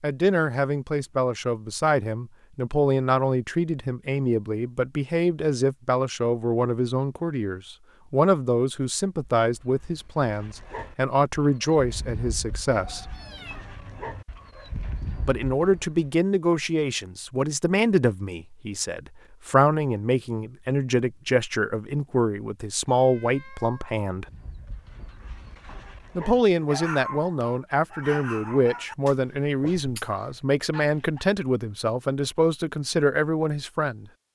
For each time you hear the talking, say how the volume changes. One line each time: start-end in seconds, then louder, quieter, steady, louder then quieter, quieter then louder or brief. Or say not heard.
0.0-13.1 steady
15.2-24.2 steady
26.1-34.0 steady.